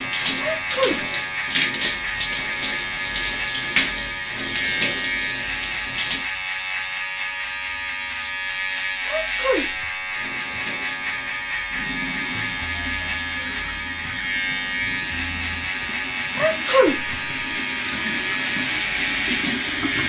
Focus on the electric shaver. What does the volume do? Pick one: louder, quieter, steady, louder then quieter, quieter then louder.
steady.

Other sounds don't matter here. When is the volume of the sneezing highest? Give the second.
17 s.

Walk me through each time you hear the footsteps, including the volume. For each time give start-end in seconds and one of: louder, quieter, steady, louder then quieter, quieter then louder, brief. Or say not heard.
not heard.